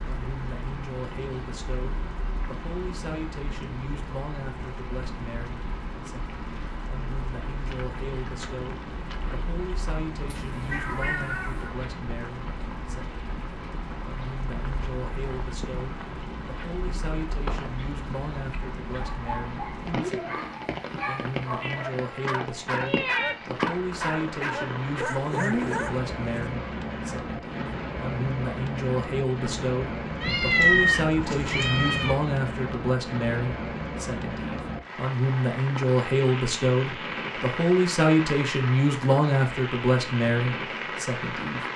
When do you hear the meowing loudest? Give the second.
31 s.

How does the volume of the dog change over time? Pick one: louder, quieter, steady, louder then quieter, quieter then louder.
louder.